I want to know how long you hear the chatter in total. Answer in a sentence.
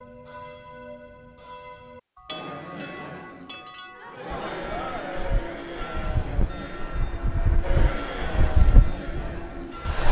The chatter can be heard for 8 seconds in total.